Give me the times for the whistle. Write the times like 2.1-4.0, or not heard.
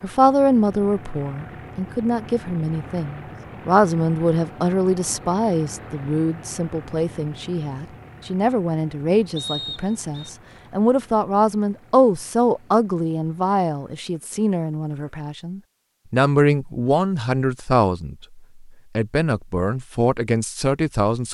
9.3-10.3.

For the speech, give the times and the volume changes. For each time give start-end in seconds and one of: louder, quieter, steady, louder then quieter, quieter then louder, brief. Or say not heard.
0.0-21.3 steady.